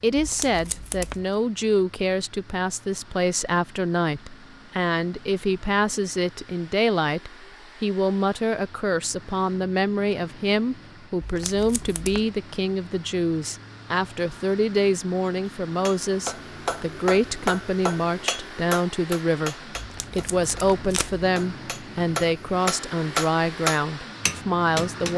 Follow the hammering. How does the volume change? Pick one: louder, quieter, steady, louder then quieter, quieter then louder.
quieter then louder.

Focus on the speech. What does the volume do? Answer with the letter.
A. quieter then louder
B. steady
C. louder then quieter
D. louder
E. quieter
B.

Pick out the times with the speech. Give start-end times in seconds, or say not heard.
0.0-25.1.